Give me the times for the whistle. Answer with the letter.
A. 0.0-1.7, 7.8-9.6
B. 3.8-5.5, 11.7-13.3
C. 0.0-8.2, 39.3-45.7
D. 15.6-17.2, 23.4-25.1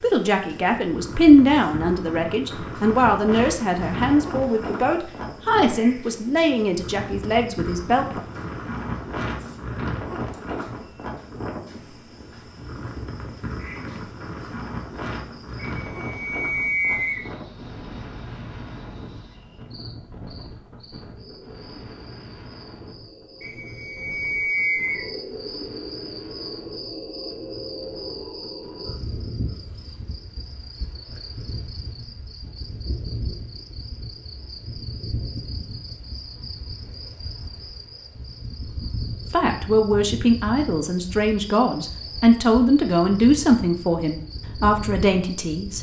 D.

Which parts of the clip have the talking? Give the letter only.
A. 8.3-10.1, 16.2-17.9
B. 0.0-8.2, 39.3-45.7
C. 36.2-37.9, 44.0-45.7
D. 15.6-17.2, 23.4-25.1
B.